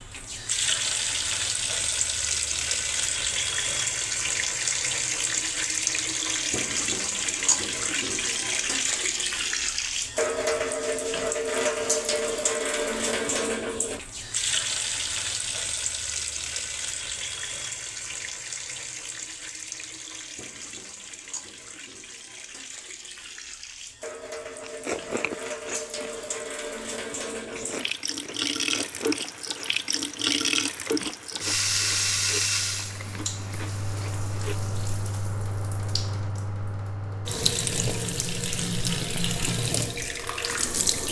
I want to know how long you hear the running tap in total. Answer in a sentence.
You can hear the running tap for 41 seconds altogether.